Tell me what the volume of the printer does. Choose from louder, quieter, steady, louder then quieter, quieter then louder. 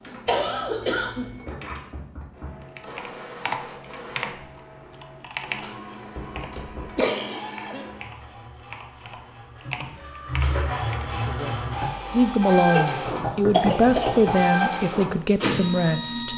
louder.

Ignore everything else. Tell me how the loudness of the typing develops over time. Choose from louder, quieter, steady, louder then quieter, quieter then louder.
quieter then louder.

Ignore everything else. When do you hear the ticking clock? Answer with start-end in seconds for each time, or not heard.
not heard.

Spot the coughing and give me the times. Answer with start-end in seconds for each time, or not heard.
0.2-1.4, 7.0-7.8, 12.7-14.2.